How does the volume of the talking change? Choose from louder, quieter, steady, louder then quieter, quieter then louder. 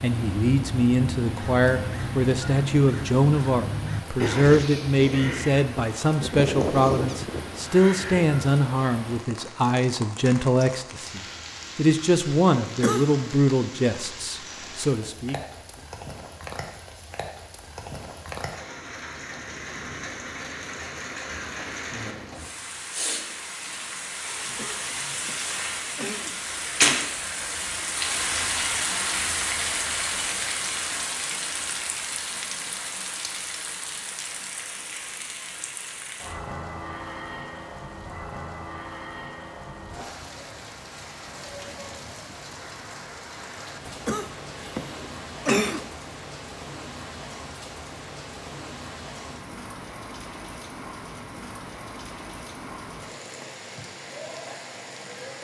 steady.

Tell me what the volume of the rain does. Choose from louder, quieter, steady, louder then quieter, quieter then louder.
louder then quieter.